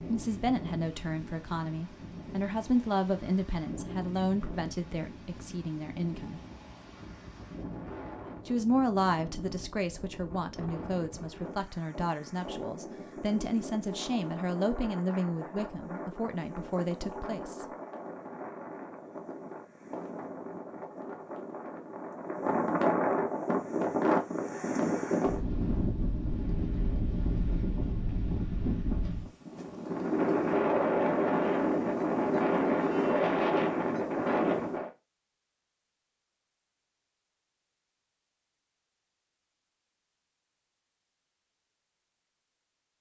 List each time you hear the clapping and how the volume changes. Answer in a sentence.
You can't hear the clapping here.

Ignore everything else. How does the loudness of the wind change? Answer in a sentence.
The volume of the wind goes up.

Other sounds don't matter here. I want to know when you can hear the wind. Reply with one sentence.
You can hear the wind from 0.0 to 34.9 s.